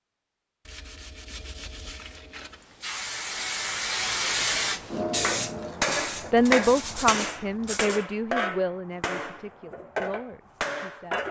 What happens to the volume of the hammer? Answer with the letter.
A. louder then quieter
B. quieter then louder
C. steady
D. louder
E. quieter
B.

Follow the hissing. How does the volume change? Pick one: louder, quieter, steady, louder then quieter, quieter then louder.
louder then quieter.